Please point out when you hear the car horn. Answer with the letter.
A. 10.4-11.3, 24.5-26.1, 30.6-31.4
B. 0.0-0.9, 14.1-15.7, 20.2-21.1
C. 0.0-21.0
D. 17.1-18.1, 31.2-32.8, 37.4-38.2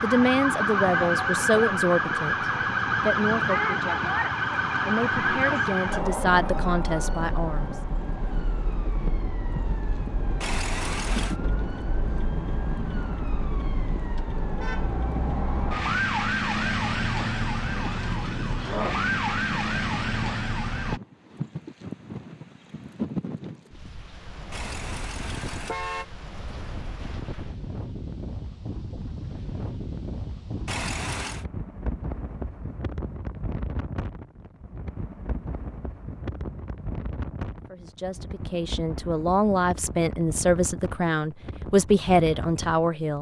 A.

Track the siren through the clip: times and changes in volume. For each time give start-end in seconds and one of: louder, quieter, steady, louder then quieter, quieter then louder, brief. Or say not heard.
0.0-21.0 quieter then louder.